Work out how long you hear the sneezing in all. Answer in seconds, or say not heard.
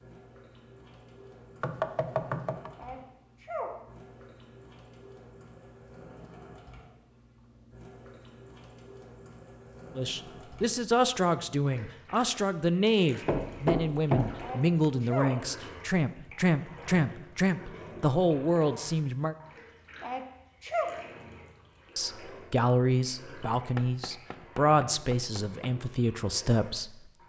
3 s.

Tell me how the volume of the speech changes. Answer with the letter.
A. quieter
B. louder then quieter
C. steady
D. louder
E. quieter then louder
C.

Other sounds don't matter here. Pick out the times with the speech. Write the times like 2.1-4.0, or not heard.
9.9-19.4, 21.9-27.2.